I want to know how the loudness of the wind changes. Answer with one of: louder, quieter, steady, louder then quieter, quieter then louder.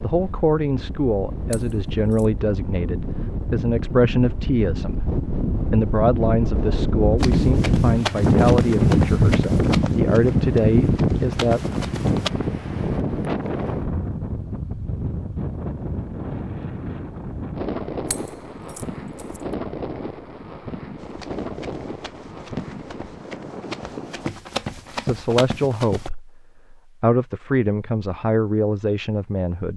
louder then quieter.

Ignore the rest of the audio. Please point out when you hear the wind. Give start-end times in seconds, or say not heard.
0.0-24.3.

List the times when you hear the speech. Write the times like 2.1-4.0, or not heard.
0.0-11.6, 25.0-29.7.